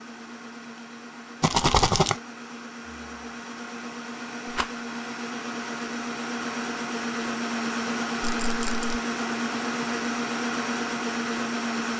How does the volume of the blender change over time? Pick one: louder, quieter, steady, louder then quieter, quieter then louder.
louder.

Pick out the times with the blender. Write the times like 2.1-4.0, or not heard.
0.0-11.9.